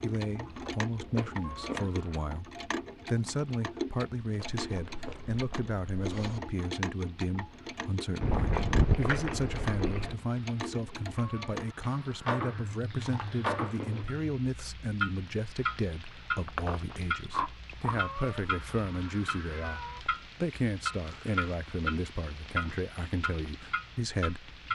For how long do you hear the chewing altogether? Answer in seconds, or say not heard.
11 s.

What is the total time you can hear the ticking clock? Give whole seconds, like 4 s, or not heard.
25 s.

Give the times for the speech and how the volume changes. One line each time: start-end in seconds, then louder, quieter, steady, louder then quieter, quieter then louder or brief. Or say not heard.
0.0-24.6 steady.